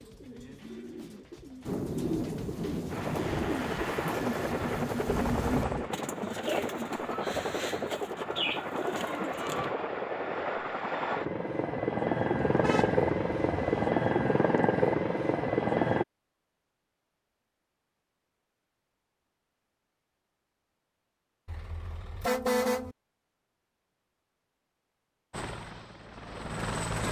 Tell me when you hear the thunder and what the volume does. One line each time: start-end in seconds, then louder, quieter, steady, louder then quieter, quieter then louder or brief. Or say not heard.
1.6-5.7 steady.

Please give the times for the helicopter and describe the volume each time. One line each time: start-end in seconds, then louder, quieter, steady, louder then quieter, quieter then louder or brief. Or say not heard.
2.9-16.1 louder
25.3-27.0 brief.